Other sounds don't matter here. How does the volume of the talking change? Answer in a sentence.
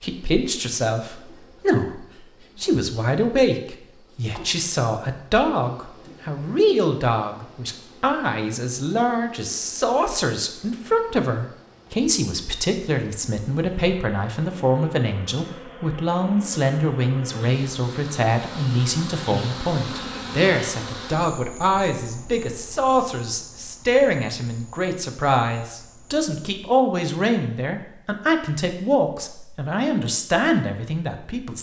The loudness of the talking stays about the same.